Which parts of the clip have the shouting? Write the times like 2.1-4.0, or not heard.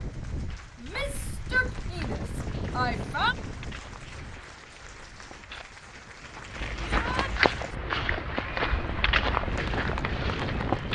0.8-3.4, 6.9-7.3.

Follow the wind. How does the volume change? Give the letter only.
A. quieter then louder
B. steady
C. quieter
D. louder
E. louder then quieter
A.